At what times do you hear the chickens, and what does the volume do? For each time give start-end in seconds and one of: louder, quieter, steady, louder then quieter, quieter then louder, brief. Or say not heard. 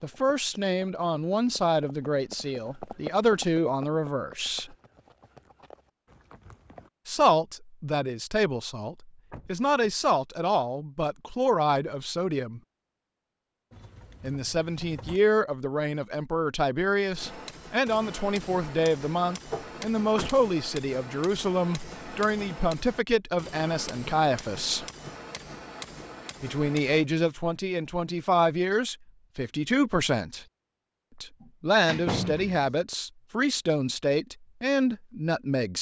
not heard.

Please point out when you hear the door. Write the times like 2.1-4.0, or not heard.
9.3-9.8, 19.5-20.3, 31.4-32.8.